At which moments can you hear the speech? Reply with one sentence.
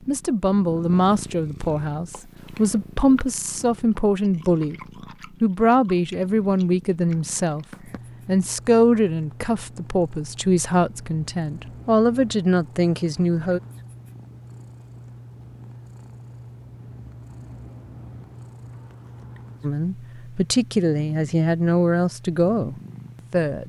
The speech can be heard from 0.1 to 4.8 s, from 5.4 to 7.7 s, from 8.2 to 13.6 s and from 19.6 to 23.6 s.